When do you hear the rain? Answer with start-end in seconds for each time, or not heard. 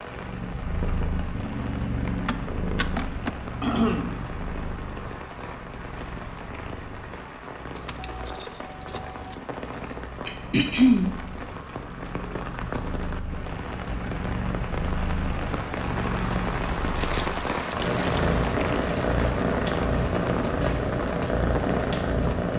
0.0-22.5.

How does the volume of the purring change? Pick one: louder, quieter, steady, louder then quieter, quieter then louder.
quieter then louder.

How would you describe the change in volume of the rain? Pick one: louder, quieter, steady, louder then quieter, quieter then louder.
louder.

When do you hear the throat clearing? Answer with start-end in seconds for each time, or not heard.
3.6-4.2, 9.8-11.1, 17.6-18.2.